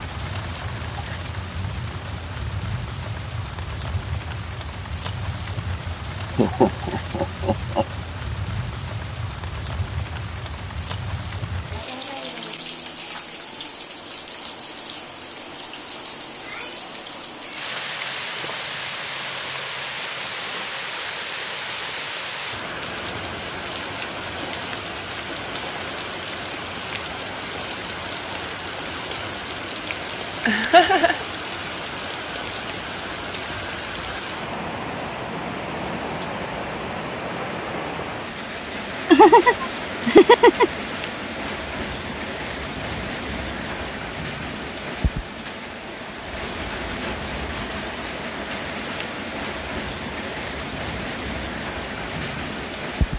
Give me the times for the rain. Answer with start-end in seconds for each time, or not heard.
0.0-53.1.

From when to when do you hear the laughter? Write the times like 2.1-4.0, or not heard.
6.3-7.8, 30.4-31.2, 39.1-40.8.